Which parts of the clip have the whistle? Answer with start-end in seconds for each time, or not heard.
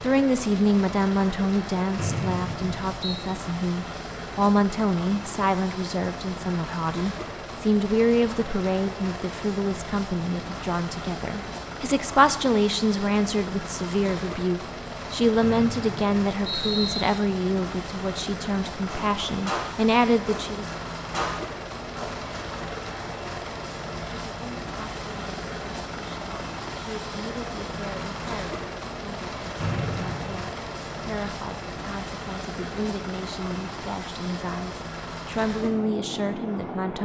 1.9-3.2, 15.4-17.1, 29.6-30.5.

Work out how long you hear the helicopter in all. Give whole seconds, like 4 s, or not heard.
37 s.